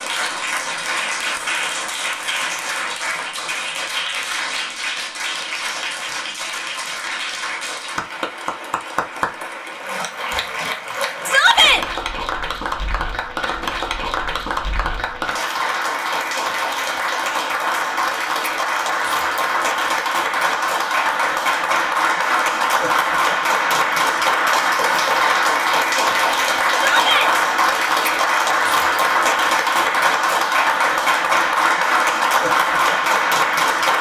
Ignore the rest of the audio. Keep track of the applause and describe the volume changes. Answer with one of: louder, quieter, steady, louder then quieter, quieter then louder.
louder.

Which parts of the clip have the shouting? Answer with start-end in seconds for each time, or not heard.
11.2-11.8, 26.7-27.3.